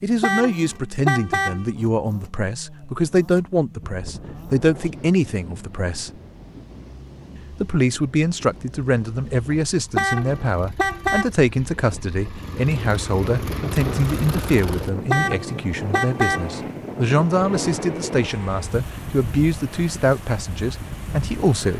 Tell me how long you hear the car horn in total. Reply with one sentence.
You can hear the car horn for 4 seconds altogether.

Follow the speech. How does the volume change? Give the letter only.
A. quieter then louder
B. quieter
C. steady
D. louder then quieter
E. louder
C.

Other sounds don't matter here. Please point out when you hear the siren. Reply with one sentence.
The siren can't be heard in this clip.